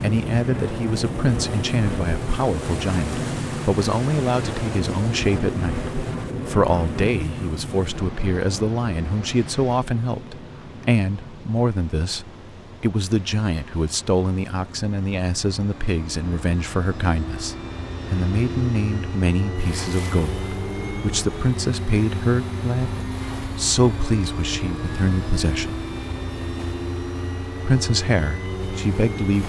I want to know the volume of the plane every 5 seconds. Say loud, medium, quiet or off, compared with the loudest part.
loud, loud, quiet, medium, loud, loud.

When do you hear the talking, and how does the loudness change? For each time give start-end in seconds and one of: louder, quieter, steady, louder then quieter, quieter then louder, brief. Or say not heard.
0.0-25.9 steady
27.6-29.4 brief.